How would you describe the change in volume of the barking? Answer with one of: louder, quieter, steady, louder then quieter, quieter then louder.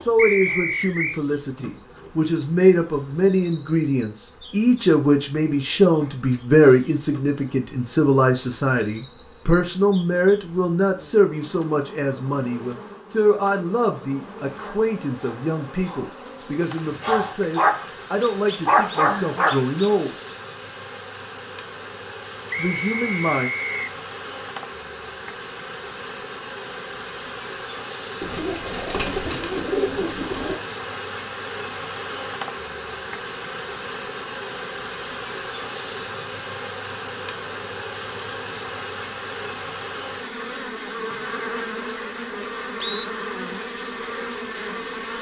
louder.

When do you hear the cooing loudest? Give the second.
30 s.